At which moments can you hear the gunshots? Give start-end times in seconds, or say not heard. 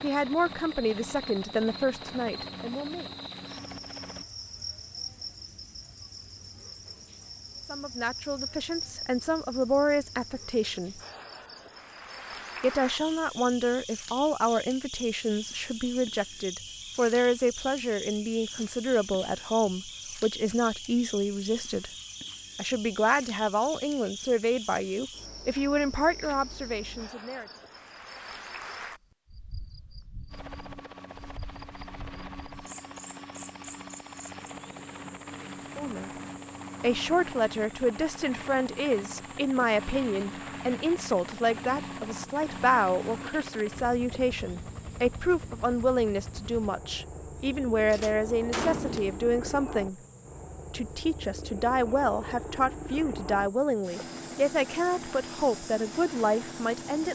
47.9-49.4.